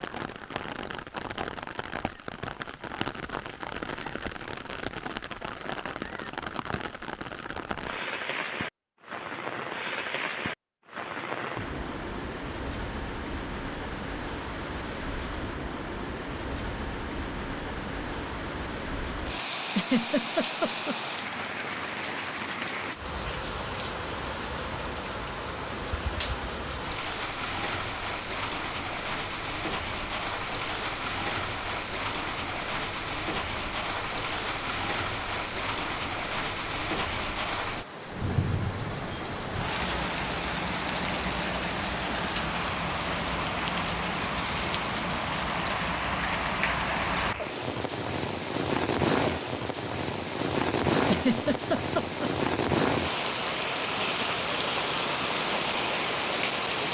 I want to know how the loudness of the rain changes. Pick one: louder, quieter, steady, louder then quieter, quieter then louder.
louder.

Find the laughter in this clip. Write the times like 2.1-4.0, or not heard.
19.6-20.9, 51.0-52.3.